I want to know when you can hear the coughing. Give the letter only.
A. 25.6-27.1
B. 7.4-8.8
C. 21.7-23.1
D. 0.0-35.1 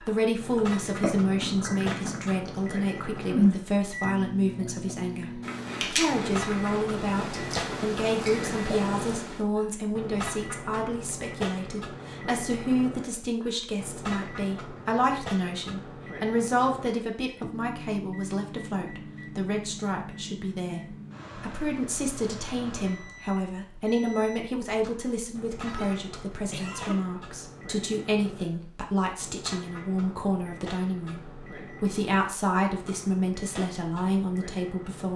A.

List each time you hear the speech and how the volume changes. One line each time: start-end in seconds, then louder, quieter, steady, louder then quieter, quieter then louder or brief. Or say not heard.
0.0-35.1 steady.